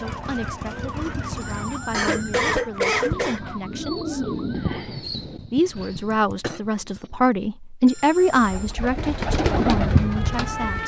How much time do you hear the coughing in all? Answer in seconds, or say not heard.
2 s.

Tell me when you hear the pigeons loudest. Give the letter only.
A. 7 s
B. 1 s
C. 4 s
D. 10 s
D.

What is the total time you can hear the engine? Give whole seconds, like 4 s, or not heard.
2 s.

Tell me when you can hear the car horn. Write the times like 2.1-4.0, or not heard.
not heard.